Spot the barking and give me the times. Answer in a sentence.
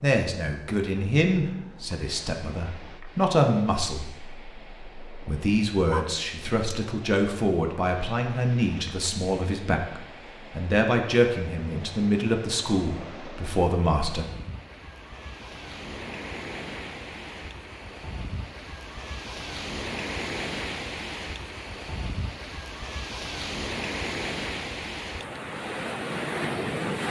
The barking can be heard from 5.8 to 6.8 s.